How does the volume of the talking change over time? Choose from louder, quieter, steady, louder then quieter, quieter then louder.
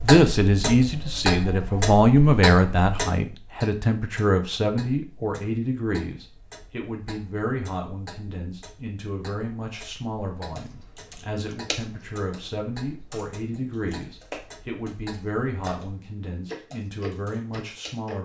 quieter.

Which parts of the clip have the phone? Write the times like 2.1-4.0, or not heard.
not heard.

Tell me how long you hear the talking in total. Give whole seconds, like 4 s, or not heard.
18 s.